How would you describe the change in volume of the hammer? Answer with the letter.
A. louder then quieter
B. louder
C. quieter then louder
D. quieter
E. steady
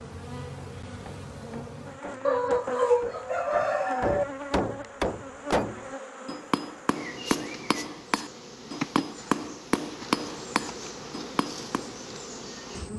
B.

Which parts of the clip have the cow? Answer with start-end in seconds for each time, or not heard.
not heard.